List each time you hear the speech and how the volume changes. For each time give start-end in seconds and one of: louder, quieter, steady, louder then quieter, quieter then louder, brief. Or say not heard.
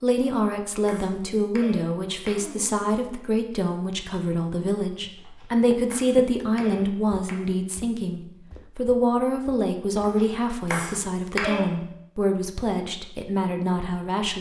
0.0-14.3 steady.